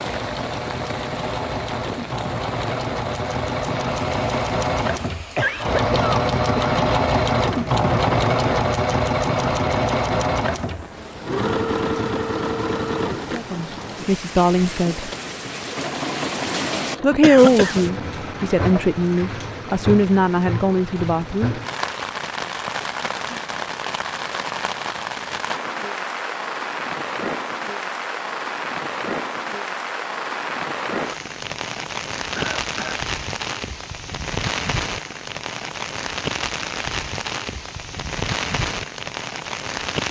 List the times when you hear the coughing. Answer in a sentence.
You can hear the coughing from 5.3 to 6.8 s, from 17.2 to 17.9 s and from 32.4 to 33.0 s.